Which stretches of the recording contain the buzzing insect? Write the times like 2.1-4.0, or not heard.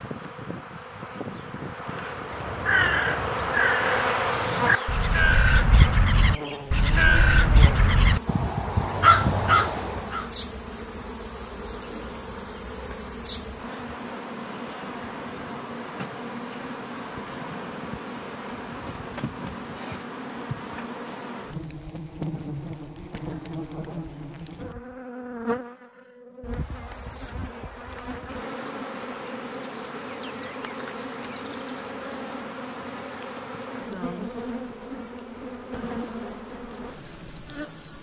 0.0-37.9.